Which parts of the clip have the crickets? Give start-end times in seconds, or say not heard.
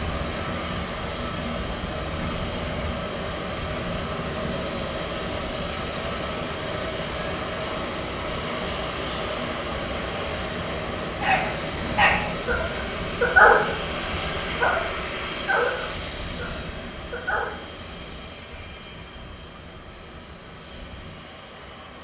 not heard.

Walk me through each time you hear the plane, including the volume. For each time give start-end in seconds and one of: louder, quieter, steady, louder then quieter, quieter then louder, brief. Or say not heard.
0.0-21.9 quieter.